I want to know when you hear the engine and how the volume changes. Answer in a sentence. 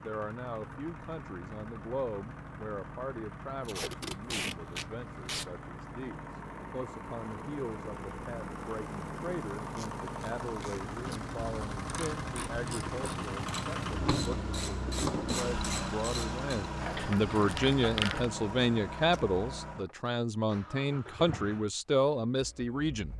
You can hear the engine from 0.0 to 23.1 s, getting louder then quieter.